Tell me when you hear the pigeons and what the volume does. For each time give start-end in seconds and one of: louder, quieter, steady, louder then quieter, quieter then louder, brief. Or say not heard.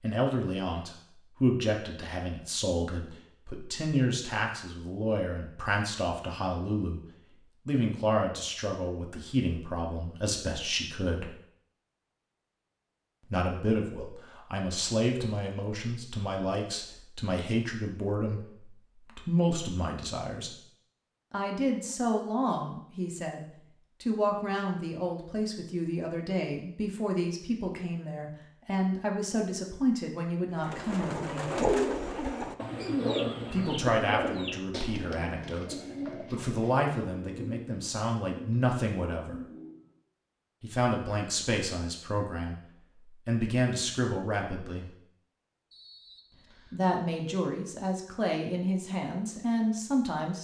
30.6-39.9 quieter.